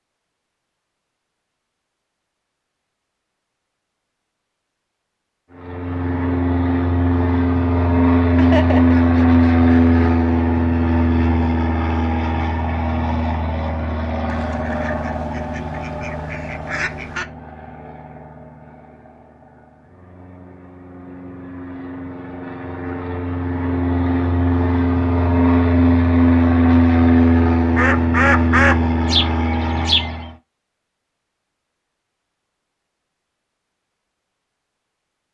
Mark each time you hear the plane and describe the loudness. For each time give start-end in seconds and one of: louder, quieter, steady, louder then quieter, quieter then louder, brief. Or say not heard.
5.5-30.4 quieter then louder.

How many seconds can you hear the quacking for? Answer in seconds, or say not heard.
7 s.